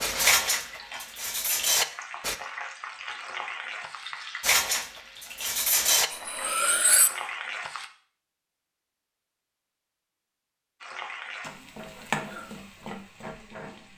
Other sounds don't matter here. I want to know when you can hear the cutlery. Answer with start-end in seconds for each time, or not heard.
0.0-2.4, 4.4-7.1.